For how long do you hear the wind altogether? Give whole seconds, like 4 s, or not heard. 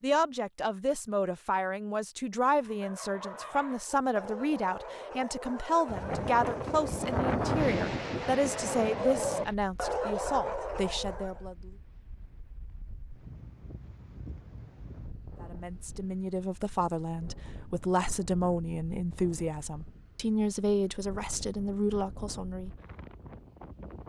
18 s.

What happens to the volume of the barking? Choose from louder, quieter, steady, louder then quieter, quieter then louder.
louder.